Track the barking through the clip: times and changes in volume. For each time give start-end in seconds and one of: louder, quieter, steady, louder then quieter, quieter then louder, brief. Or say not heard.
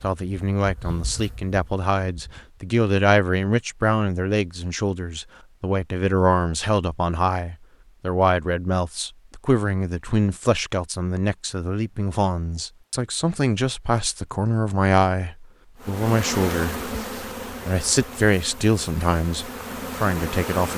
not heard.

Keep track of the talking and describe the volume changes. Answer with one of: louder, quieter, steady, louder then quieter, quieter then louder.
steady.